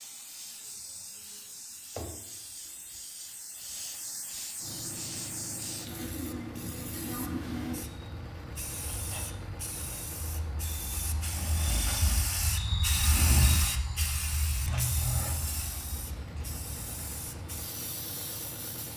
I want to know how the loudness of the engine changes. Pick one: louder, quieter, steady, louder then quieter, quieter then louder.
quieter then louder.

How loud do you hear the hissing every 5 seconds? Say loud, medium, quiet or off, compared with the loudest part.
medium, medium, loud, medium.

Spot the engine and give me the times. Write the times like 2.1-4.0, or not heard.
4.5-18.9.